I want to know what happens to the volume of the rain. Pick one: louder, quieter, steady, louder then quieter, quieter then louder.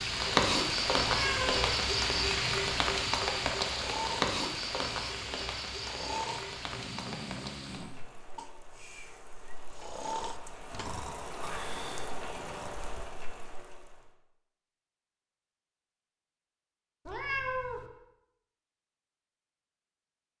quieter then louder.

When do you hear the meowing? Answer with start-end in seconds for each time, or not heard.
1.0-1.8, 17.1-17.9.